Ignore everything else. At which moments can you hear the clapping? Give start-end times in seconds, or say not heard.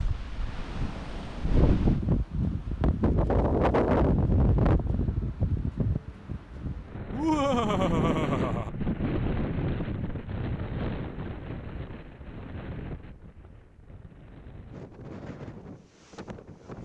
not heard.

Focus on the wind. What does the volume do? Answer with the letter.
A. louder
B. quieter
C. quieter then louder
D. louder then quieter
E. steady
B.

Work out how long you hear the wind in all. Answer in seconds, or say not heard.
17 s.